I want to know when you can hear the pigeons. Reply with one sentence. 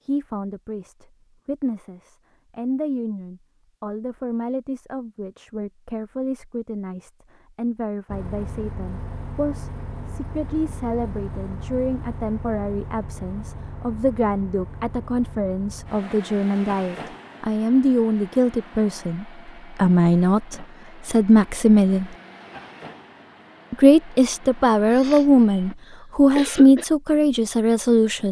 You can't hear the pigeons here.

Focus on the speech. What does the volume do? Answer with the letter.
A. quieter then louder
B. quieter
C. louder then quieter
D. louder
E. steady
D.